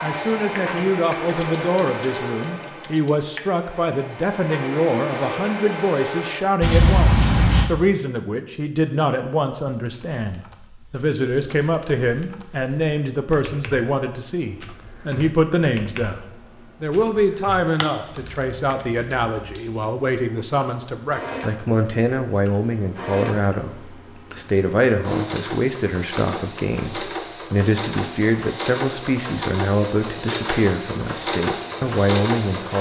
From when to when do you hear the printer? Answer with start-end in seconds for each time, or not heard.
0.0-6.5, 19.8-32.7.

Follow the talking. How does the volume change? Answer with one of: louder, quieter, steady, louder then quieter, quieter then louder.
steady.